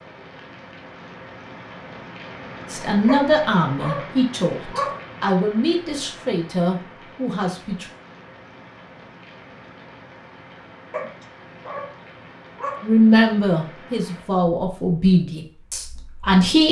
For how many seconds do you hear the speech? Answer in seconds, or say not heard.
9 s.